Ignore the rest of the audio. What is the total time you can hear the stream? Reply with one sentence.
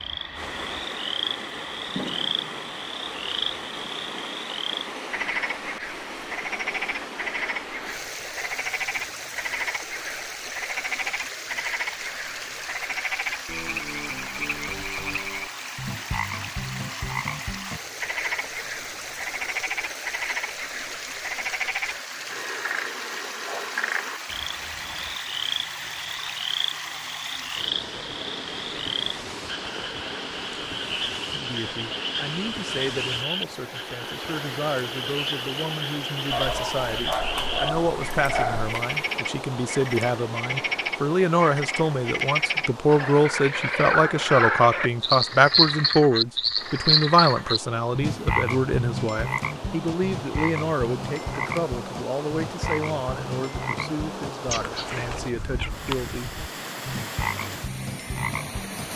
The stream can be heard for 59 seconds in total.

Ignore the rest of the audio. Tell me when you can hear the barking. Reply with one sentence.
The barking can be heard from 36.3 to 38.9 s.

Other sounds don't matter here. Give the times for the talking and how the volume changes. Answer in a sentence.
You can hear the talking from 31.3 to 56.4 s, getting louder then quieter.